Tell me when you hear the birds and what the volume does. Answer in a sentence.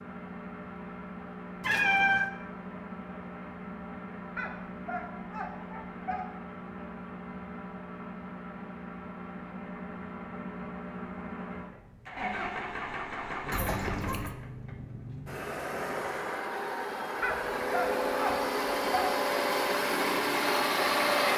You can't hear the birds here.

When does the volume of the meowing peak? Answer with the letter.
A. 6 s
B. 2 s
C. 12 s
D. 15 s
B.